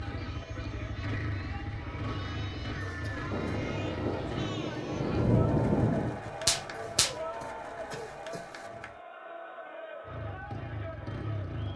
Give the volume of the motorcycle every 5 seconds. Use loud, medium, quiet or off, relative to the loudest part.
loud, off, loud.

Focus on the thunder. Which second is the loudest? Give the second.
5 s.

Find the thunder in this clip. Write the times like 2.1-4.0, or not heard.
3.3-7.2.